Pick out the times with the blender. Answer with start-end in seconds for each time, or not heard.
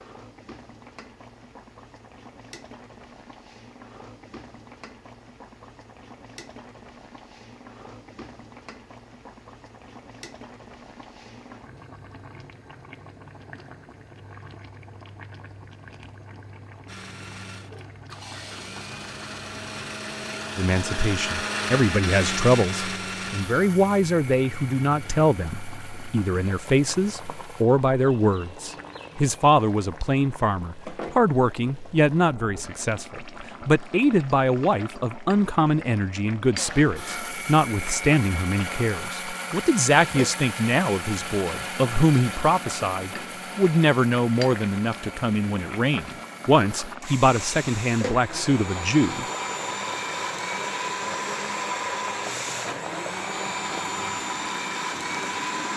16.9-27.6, 36.5-55.7.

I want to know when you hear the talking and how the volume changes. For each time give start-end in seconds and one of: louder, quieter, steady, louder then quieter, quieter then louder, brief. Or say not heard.
20.6-49.2 steady.